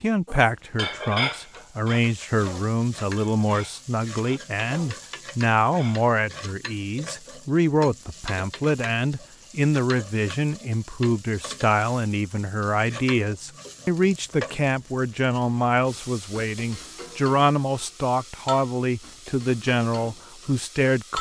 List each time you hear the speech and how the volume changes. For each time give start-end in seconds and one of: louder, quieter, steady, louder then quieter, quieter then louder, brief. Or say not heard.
0.0-21.1 steady.